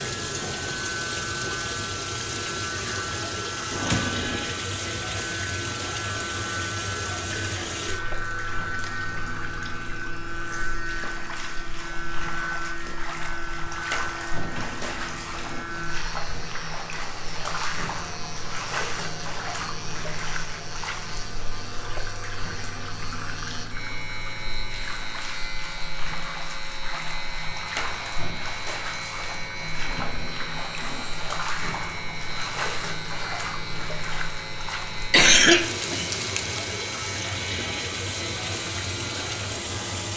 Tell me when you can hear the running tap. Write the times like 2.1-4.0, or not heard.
0.0-40.1.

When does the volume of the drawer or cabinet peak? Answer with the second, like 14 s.
4 s.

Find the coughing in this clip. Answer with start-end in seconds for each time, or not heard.
35.1-36.6.